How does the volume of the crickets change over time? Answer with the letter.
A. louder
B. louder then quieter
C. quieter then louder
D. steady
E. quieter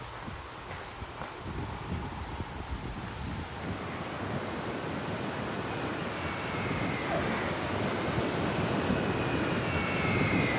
A.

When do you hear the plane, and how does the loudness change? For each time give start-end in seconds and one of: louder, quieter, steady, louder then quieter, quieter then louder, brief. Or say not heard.
0.0-10.5 louder.